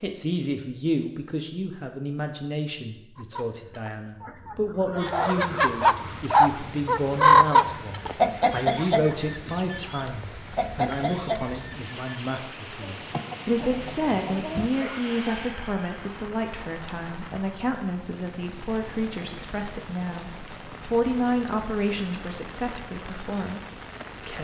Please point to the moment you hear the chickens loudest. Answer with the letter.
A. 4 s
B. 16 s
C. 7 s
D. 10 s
C.